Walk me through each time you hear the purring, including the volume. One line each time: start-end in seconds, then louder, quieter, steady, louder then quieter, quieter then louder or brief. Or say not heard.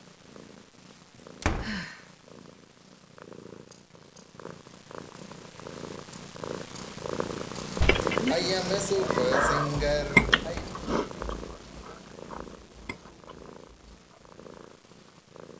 0.0-15.5 louder then quieter.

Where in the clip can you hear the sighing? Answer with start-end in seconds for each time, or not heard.
1.1-2.0, 8.0-10.7.